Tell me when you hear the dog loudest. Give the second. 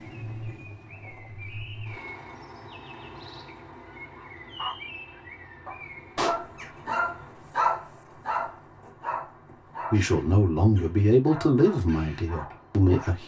8 s.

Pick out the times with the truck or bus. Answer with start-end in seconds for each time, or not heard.
0.0-7.5.